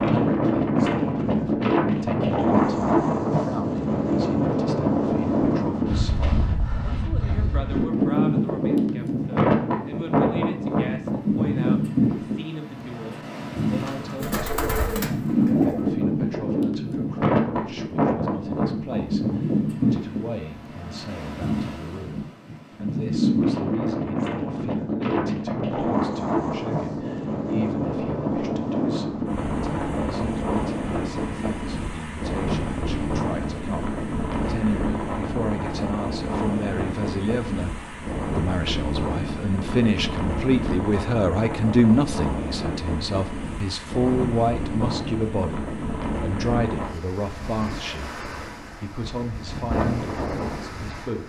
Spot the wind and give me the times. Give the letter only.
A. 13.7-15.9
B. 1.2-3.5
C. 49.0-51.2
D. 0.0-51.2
D.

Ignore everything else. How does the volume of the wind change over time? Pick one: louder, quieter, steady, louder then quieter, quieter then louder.
quieter.